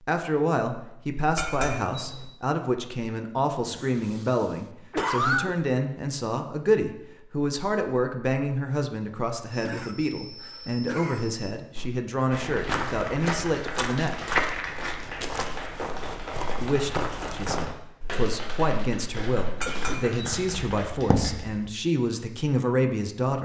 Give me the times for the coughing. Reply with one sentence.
You can hear the coughing from 3.6 to 5.5 s, from 9.5 to 11.5 s and from 19.6 to 20.4 s.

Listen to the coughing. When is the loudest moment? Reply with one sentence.
The loudest moment of the coughing is at 5 seconds.